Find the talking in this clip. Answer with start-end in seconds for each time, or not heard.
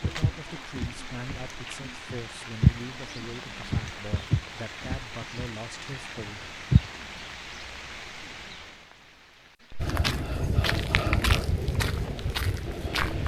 0.0-6.5.